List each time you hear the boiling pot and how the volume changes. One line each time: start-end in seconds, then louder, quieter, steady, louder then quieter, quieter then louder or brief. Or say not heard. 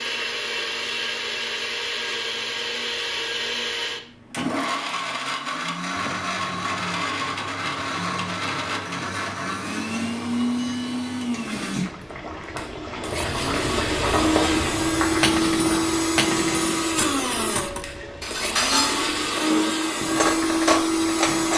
5.9-21.5 louder then quieter.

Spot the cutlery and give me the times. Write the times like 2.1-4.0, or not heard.
15.2-21.5.